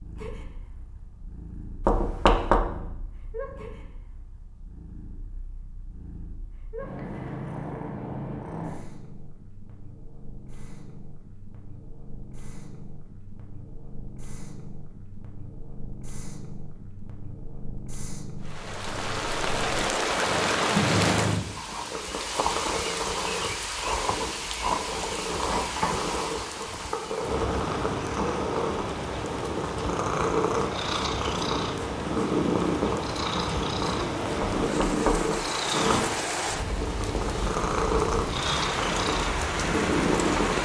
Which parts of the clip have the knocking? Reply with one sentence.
The knocking can be heard from 1.9 to 2.6 s and from 34.4 to 35.4 s.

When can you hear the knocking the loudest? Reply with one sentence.
The loudest moment of the knocking is at 2 seconds.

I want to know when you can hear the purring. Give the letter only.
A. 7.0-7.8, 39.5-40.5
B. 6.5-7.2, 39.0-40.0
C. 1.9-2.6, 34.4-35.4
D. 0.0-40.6
D.